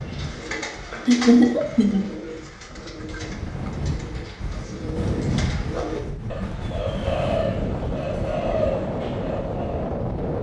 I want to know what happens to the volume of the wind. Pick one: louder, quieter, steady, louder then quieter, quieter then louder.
louder.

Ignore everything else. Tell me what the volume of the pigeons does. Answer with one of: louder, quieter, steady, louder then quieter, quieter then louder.
quieter then louder.